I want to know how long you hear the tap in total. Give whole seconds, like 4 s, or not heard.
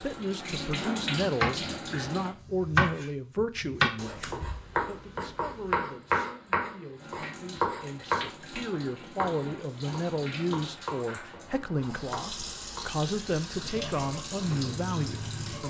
11 s.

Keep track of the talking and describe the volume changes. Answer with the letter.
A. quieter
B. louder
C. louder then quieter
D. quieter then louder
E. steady
D.